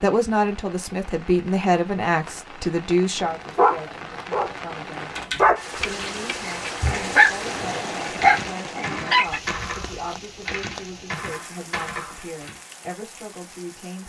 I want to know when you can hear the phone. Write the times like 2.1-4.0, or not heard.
not heard.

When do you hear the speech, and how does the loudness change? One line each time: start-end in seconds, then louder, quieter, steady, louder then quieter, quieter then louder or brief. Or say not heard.
0.0-14.0 quieter.